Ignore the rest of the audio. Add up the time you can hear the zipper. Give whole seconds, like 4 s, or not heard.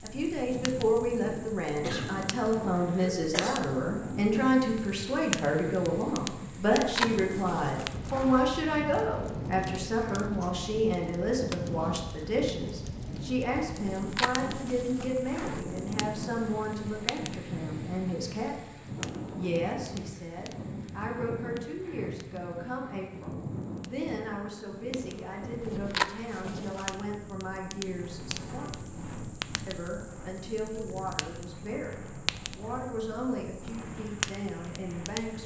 5 s.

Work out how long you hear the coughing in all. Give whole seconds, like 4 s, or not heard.
2 s.